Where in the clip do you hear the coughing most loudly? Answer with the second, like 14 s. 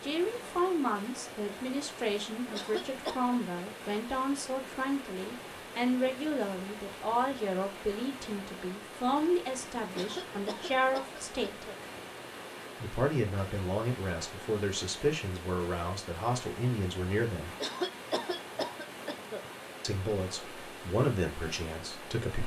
18 s.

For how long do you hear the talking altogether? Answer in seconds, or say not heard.
19 s.